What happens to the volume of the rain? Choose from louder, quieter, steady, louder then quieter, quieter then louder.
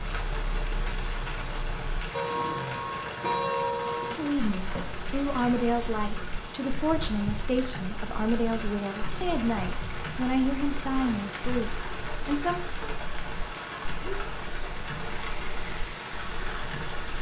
steady.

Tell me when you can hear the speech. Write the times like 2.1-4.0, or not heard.
4.0-12.7.